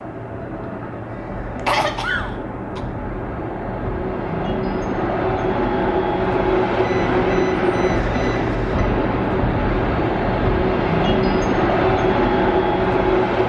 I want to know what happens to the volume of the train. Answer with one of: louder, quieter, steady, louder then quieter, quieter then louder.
louder.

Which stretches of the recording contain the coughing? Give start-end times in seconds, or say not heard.
1.6-2.9.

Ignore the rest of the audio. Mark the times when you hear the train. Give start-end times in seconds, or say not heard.
0.0-13.4.